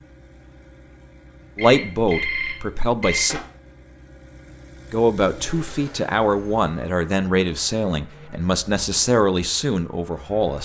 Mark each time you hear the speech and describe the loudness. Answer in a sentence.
You can hear the speech briefly from 1.6 to 3.4 s; and from 4.9 to 10.6 s, at a steady volume.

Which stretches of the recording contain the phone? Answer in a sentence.
You can hear the phone from 1.6 to 3.5 s.